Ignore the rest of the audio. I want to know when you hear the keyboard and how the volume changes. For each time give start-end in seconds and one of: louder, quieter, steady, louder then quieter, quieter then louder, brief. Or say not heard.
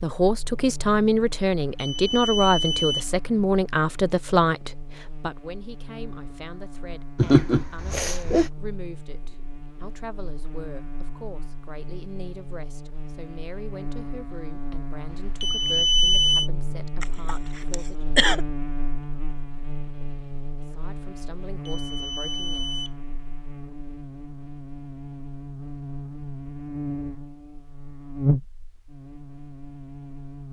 not heard.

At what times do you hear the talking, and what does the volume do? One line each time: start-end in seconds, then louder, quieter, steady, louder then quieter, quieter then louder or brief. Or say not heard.
0.0-18.1 quieter
20.6-22.8 brief.